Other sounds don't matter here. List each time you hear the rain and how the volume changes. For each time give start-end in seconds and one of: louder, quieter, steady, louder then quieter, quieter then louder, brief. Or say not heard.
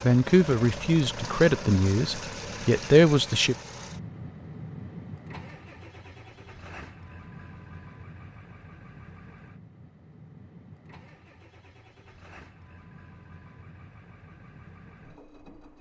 not heard.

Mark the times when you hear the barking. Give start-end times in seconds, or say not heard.
not heard.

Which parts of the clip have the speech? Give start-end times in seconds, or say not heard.
0.0-3.5.